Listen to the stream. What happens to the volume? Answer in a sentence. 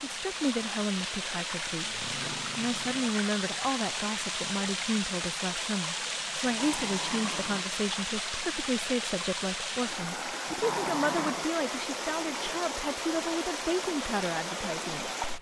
The volume of the stream stays about the same.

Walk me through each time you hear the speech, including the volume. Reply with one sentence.
You can hear the speech from 0.0 to 15.2 s, at a steady volume.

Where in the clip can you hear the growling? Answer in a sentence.
You can hear the growling from 1.8 to 3.1 s, from 6.4 to 7.7 s and from 10.4 to 11.5 s.